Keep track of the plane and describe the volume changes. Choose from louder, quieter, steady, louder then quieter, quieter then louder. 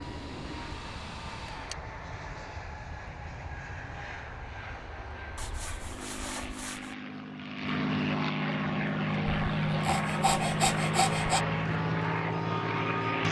louder.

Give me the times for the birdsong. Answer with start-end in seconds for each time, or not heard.
not heard.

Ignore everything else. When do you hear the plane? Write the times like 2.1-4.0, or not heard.
0.0-13.2.